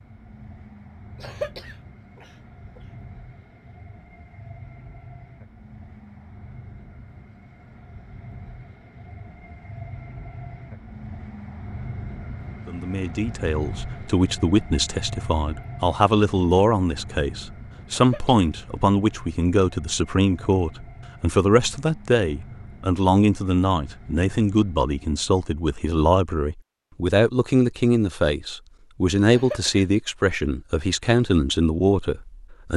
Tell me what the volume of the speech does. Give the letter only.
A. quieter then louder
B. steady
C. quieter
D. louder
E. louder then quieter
B.